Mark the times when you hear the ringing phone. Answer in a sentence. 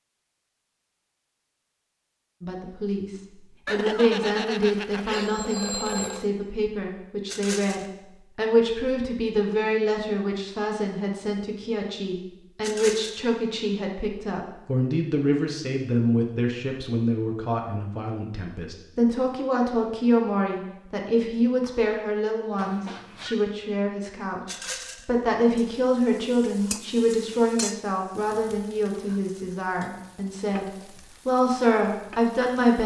You can hear the ringing phone from 3.6 to 6.3 s and from 22.6 to 23.4 s.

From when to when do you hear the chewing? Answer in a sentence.
You can't hear the chewing here.